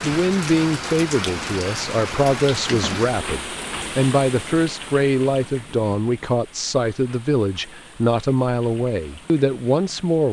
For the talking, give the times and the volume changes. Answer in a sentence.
You can hear the talking from 0.0 to 10.2 s, at a steady volume.